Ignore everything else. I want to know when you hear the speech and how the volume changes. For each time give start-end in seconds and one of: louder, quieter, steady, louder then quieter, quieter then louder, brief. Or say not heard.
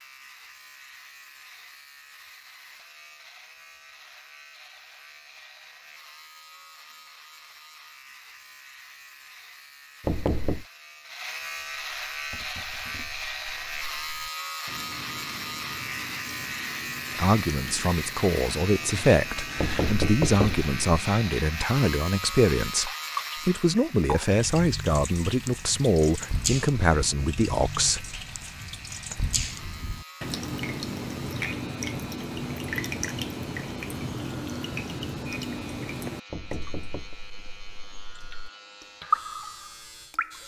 17.1-28.4 steady.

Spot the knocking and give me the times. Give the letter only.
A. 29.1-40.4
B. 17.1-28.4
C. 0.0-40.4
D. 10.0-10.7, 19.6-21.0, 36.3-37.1
D.